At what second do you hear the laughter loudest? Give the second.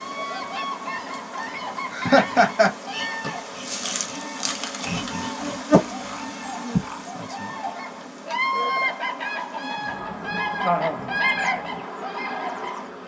2 s.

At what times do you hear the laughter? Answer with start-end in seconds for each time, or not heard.
1.9-2.7, 4.8-7.1, 10.6-11.1.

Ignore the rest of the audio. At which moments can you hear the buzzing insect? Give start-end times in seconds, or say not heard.
0.0-13.0.